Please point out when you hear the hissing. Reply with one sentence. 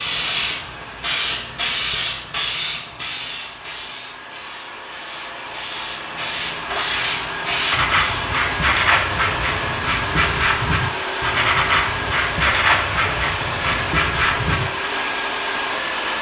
You can hear the hissing from 0.0 to 8.3 s.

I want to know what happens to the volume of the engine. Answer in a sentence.
The loudness of the engine goes up.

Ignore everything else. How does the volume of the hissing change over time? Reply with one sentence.
The volume of the hissing goes down, then up.